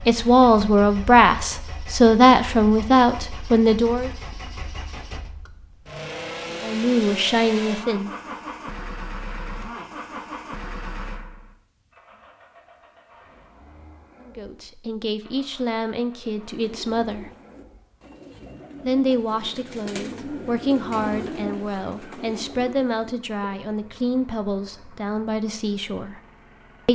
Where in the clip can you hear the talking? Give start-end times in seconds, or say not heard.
0.1-4.1, 6.6-8.1, 14.2-17.3, 18.9-26.2.